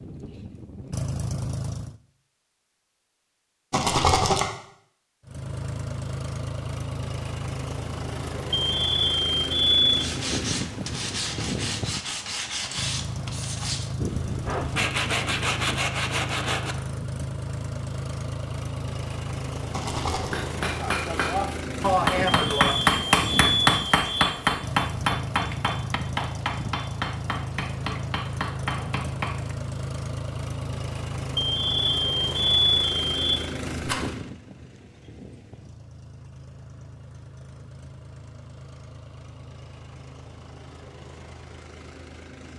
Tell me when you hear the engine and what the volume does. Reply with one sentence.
You can hear the engine briefly from 0.0 to 2.0 s; and from 5.2 to 42.5 s, getting quieter.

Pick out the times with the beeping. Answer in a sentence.
You can hear the beeping from 8.5 to 10.1 s, from 22.4 to 24.3 s and from 31.4 to 33.4 s.